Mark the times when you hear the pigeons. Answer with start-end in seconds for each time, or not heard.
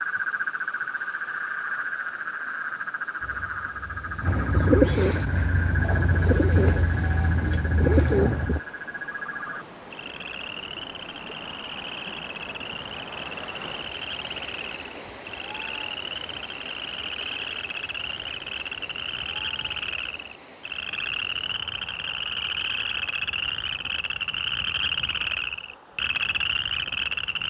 3.2-8.6.